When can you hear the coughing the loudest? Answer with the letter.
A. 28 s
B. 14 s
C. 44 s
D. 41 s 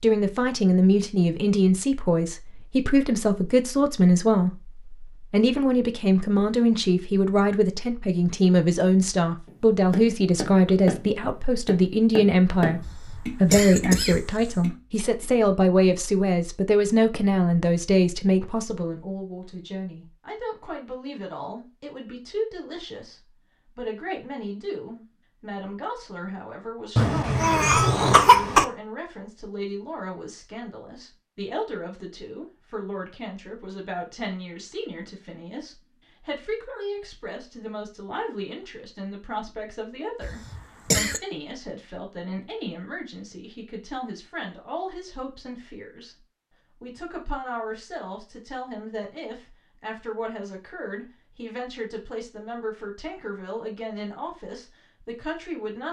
A.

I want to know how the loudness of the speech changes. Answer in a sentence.
The loudness of the speech goes down.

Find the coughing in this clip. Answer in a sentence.
You can hear the coughing from 12.8 to 14.7 s, from 26.9 to 28.6 s and from 40.2 to 41.2 s.